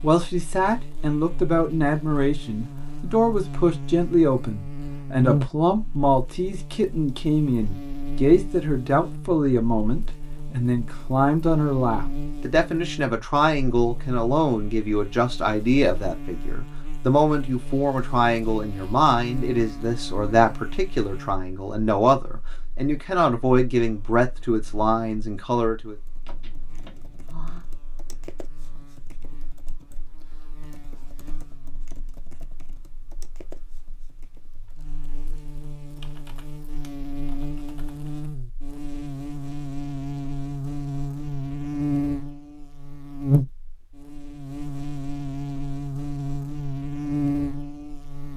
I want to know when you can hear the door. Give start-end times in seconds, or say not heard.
26.2-27.6.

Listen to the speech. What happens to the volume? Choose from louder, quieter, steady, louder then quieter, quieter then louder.
steady.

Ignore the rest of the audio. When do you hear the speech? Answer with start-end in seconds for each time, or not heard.
0.0-25.9.